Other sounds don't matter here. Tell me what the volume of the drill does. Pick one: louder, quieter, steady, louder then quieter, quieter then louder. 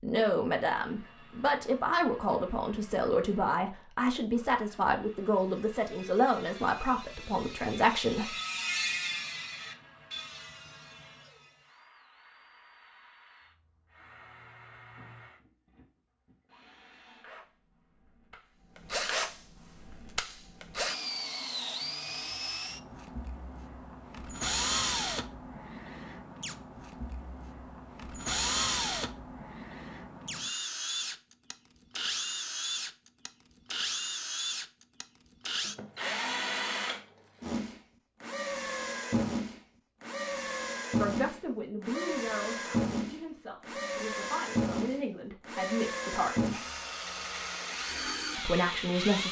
louder.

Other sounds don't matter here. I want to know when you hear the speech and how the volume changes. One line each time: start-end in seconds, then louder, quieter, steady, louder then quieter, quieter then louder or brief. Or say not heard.
0.0-8.3 steady
41.0-46.5 quieter then louder
48.4-49.2 brief.